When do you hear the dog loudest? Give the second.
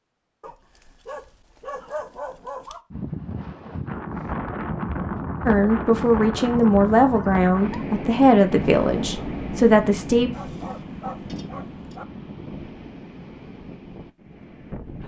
2 s.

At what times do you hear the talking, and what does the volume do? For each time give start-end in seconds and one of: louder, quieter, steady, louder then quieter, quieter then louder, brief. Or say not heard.
5.5-10.3 steady.